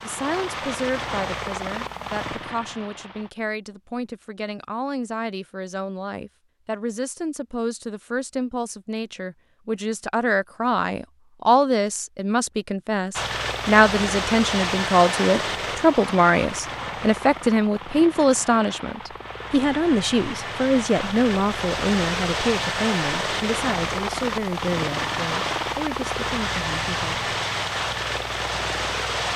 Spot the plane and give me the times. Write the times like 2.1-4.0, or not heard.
0.0-3.3, 13.1-29.3.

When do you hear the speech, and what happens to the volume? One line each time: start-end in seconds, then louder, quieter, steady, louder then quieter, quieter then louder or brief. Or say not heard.
0.0-27.3 louder then quieter.